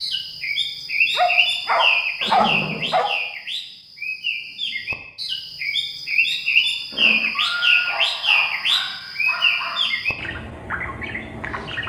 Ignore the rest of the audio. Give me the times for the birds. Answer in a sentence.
The birds can be heard from 0.0 to 11.8 s.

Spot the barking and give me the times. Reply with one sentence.
You can hear the barking from 1.1 to 3.1 s and from 7.8 to 9.8 s.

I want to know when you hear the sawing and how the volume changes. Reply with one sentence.
The sawing can't be heard in this clip.